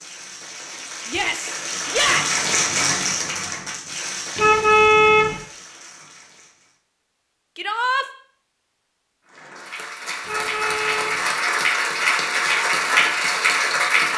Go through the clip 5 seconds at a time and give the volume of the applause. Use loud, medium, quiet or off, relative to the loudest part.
medium, quiet, loud.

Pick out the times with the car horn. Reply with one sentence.
You can hear the car horn from 4.3 to 5.4 s and from 10.2 to 11.2 s.